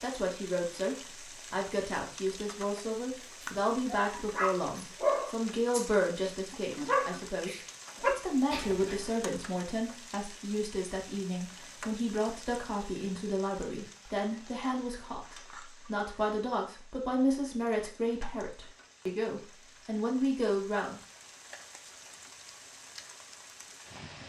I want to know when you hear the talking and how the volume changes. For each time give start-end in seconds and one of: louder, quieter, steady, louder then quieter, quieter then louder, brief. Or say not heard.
0.0-21.0 steady.